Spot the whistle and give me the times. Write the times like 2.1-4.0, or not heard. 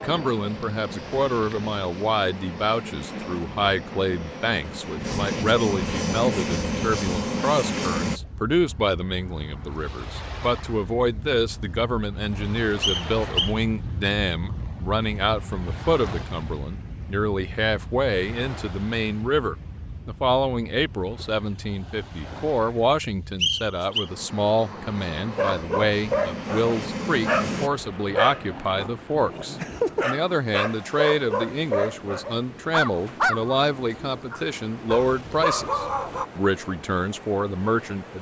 12.8-13.6, 23.4-24.1.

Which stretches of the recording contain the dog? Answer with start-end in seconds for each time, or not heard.
25.4-36.2.